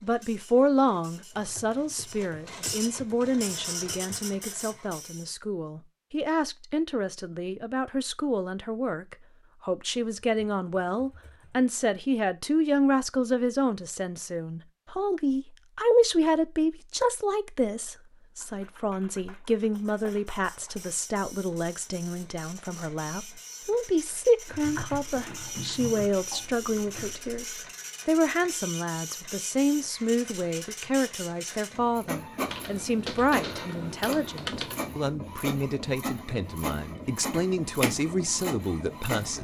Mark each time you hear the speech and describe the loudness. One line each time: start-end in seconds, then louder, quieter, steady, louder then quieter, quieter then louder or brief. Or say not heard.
0.0-39.3 steady.